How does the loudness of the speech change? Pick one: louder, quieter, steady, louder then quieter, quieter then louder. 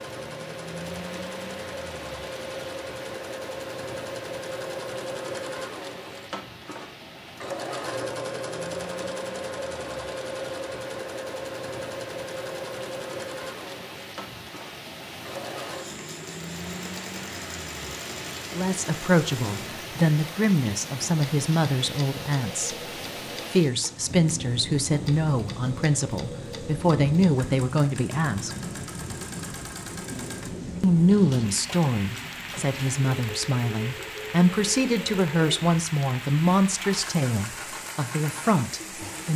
steady.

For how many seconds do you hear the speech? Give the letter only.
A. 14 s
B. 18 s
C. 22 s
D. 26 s
B.